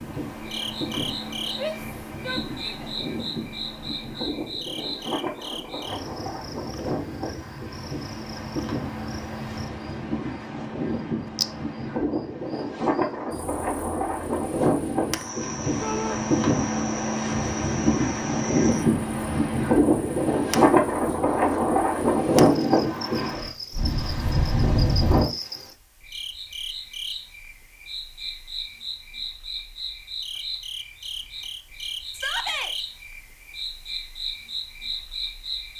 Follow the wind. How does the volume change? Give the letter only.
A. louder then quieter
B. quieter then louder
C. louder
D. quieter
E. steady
C.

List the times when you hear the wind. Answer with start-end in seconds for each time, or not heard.
0.0-25.2.